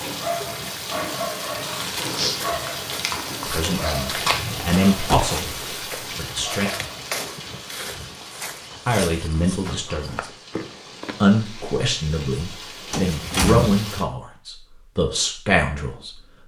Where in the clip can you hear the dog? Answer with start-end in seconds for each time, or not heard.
0.0-7.6.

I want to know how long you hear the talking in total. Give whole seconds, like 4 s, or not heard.
10 s.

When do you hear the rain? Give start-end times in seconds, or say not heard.
0.0-14.1.